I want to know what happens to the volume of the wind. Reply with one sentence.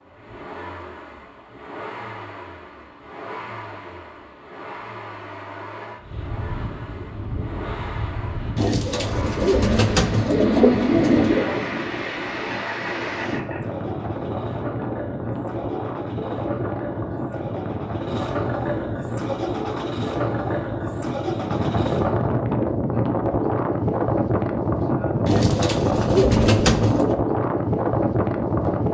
The loudness of the wind goes up.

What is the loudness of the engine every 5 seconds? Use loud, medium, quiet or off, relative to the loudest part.
medium, medium, medium, loud, loud, off.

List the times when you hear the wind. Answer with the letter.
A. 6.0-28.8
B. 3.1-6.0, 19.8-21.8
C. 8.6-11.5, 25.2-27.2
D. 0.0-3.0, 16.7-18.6
A.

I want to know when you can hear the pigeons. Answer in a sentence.
The pigeons can be heard from 8.6 to 11.5 s and from 25.2 to 27.2 s.